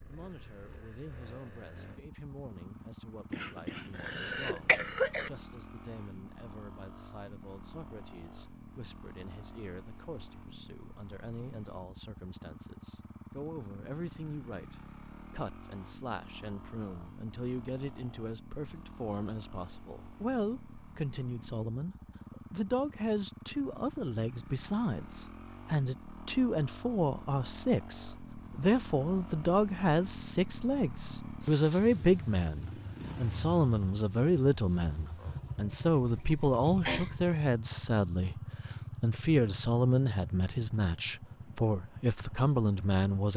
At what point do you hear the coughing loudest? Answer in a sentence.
The volume of the coughing peaks at 5 seconds.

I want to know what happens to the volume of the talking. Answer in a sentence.
The loudness of the talking goes up.